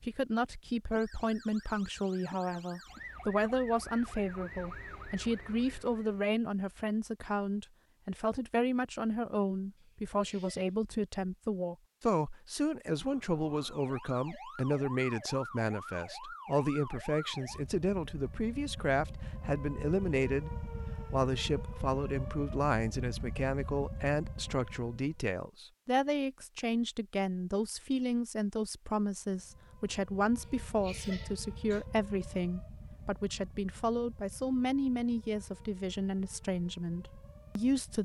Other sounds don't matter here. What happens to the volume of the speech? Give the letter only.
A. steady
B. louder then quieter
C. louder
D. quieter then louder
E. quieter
A.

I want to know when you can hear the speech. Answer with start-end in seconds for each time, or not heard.
0.0-37.9.